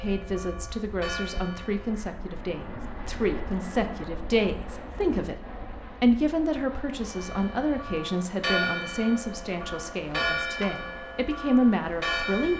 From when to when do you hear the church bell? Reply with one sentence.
The church bell can be heard from 0.0 to 2.0 s and from 7.1 to 12.5 s.